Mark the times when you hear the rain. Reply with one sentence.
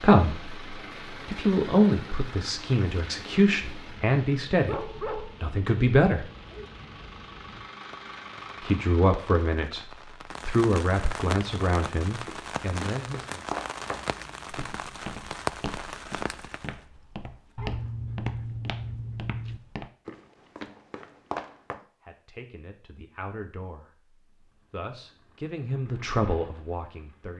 The rain can be heard from 0.2 to 16.9 s.